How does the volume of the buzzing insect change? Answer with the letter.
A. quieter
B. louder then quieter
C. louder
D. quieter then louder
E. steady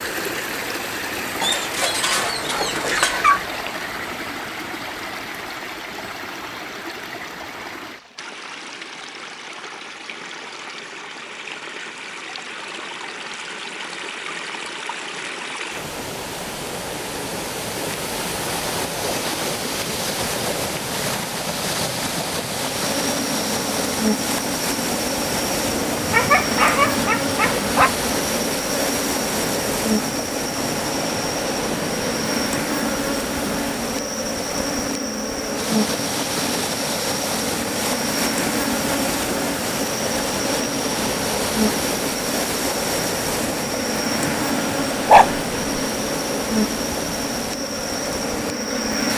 E.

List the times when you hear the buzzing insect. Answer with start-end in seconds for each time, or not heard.
22.8-49.1.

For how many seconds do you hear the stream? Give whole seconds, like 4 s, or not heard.
49 s.